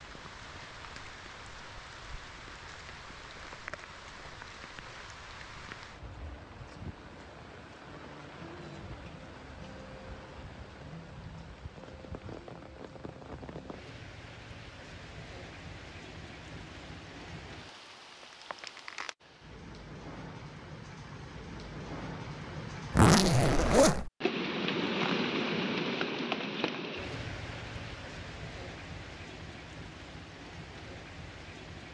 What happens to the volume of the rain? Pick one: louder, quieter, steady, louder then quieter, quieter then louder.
louder.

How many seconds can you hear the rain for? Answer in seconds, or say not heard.
32 s.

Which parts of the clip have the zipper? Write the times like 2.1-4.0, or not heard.
22.9-24.1.